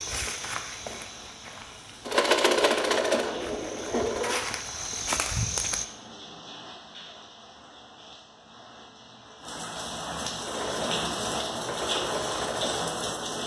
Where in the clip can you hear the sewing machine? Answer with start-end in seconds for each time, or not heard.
2.0-4.5, 10.4-13.4.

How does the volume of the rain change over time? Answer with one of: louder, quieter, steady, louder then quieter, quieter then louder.
louder.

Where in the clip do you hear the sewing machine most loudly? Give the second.
3 s.